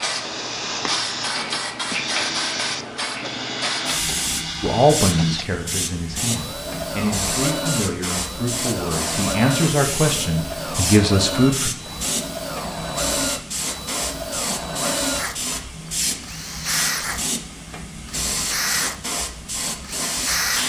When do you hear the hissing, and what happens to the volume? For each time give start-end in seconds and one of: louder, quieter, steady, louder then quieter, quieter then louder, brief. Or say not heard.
0.0-20.6 steady.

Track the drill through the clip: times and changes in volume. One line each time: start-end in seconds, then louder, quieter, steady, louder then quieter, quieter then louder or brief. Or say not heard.
0.1-20.6 steady.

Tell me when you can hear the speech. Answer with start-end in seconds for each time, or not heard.
4.6-11.7.